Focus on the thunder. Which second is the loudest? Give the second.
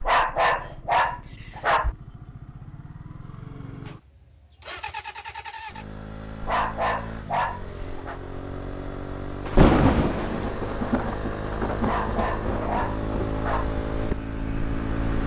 10 s.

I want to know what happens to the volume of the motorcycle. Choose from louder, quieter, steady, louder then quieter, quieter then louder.
louder.